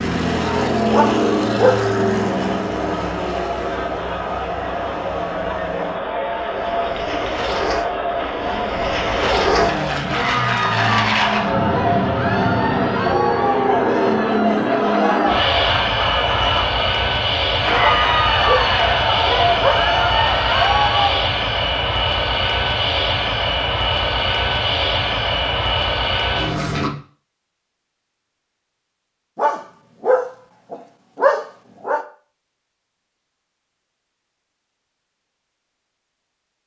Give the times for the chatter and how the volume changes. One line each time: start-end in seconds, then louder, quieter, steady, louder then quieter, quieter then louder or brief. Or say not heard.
0.2-21.2 louder.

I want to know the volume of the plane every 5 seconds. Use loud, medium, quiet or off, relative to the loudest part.
loud, medium, loud, loud, loud, loud, off, off.